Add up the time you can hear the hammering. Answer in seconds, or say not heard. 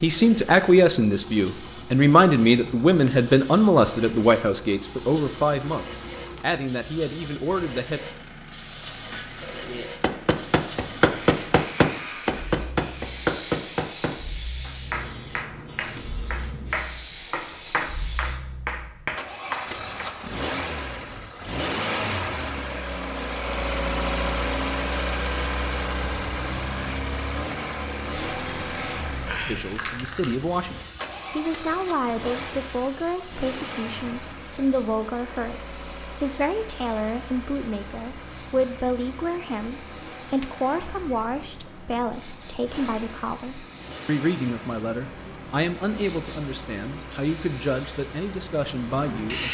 11 s.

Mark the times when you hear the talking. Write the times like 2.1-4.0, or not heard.
0.0-8.0, 29.4-49.4.